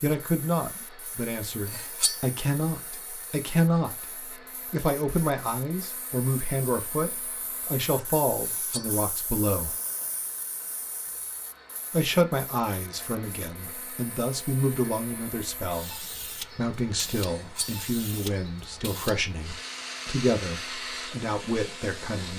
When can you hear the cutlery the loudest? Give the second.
2 s.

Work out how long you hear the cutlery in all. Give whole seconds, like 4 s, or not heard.
2 s.